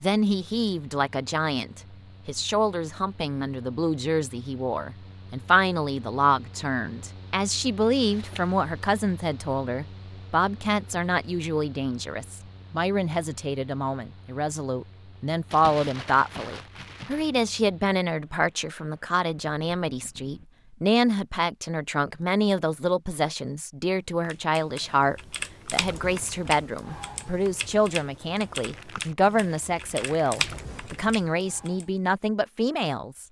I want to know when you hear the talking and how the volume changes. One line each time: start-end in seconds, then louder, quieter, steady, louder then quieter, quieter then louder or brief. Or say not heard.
0.0-33.2 steady.